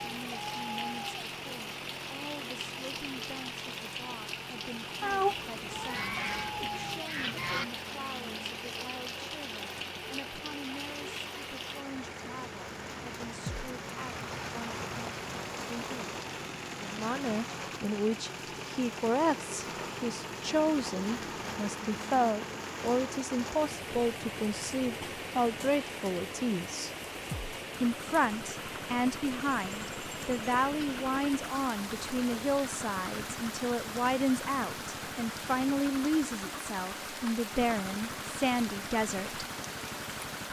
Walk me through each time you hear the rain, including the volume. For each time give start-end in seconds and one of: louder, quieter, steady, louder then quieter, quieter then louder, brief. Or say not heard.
0.0-40.4 steady.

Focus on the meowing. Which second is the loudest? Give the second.
5 s.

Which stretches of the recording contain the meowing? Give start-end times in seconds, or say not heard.
5.0-6.7, 31.9-32.8.